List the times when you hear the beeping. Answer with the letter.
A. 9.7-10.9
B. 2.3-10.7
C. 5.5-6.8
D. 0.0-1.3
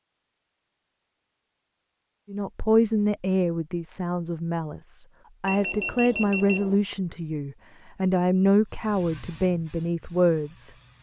C.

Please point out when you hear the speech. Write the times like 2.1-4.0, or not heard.
2.3-10.7.